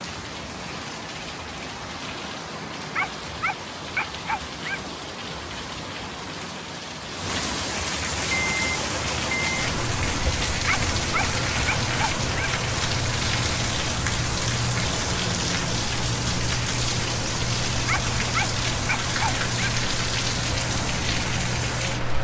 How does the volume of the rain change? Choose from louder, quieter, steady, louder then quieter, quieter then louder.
louder.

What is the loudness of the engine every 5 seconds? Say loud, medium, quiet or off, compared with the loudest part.
off, loud, loud, loud, loud.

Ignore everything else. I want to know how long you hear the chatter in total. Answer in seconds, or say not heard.
not heard.